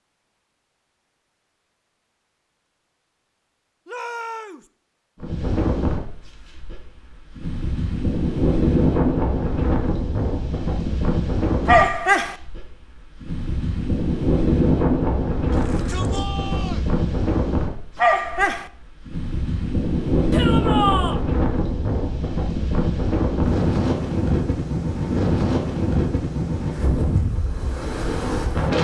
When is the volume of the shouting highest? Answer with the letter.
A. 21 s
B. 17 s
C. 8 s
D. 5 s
A.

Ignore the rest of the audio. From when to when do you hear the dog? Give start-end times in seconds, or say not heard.
11.7-12.3, 17.9-18.7.